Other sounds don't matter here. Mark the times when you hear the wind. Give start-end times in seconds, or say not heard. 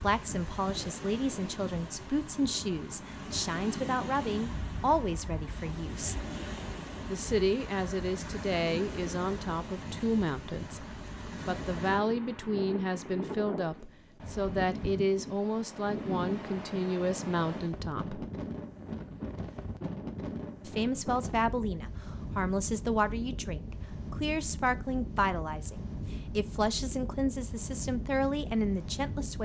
0.0-29.4.